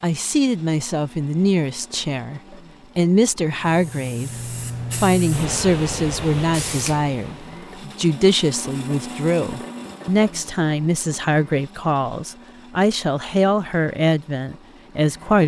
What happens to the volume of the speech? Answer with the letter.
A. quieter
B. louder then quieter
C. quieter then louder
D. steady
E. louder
D.